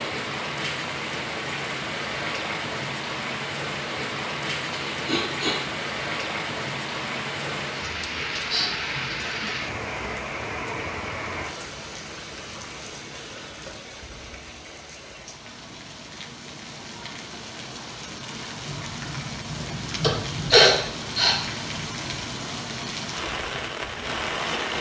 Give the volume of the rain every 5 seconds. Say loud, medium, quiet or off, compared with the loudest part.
loud, loud, medium, medium, loud.